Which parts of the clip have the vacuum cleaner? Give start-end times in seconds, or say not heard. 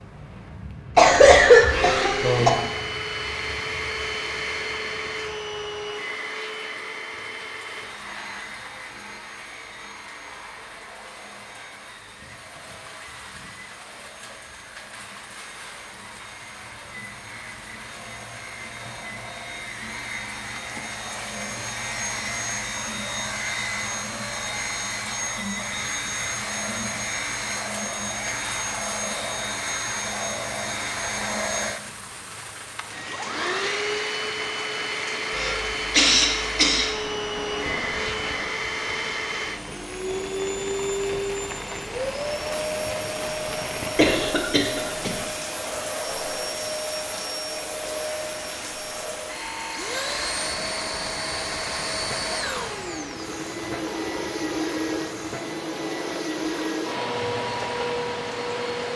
0.0-58.9.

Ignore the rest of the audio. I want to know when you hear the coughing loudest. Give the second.
1 s.